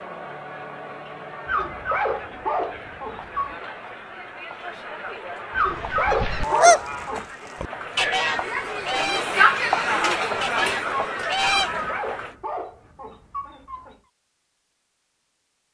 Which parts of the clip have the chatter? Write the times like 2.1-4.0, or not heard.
0.0-12.3.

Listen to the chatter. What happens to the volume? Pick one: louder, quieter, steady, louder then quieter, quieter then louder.
louder.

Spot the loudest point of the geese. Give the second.
7 s.